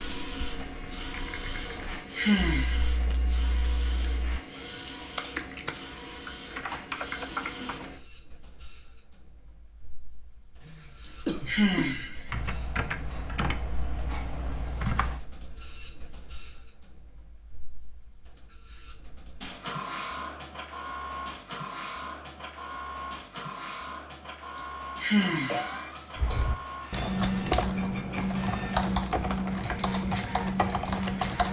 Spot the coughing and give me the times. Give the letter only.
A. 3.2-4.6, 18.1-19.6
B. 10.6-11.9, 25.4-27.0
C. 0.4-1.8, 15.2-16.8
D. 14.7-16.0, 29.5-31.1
B.